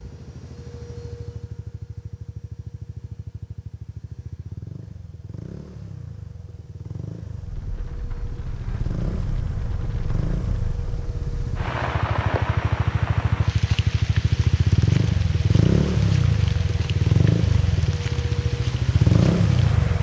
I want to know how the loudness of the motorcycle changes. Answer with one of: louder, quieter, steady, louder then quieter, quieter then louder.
louder.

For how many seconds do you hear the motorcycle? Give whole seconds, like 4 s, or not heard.
20 s.